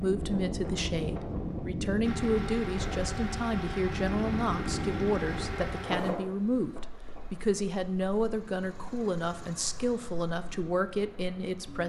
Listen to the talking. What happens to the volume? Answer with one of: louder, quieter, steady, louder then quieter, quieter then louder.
steady.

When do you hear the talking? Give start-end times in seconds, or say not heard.
0.0-11.8.